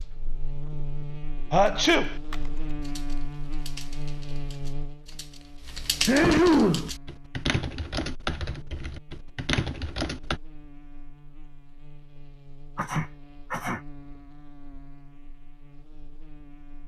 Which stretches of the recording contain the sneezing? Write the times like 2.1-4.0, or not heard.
1.5-2.1, 6.0-6.9, 12.8-13.8.